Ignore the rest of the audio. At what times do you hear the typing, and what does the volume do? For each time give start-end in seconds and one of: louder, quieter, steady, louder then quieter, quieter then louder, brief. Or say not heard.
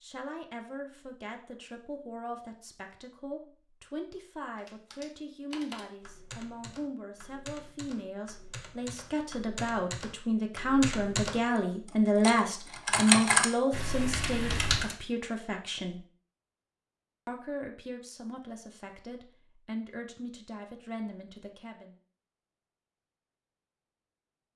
4.5-14.9 louder.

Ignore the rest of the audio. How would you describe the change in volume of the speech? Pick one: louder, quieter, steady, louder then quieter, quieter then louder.
louder then quieter.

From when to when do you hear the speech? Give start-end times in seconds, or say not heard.
0.0-16.1, 17.2-21.9.